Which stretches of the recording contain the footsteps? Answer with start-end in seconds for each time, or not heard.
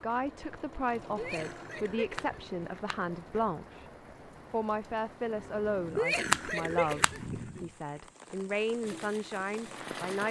not heard.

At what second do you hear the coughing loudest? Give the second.
6 s.